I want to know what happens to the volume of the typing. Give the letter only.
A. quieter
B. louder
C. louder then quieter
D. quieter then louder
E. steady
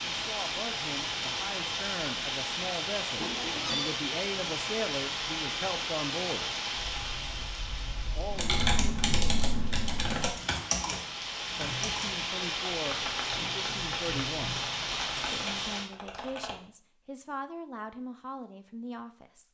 C.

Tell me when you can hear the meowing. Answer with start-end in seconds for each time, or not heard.
3.1-4.0.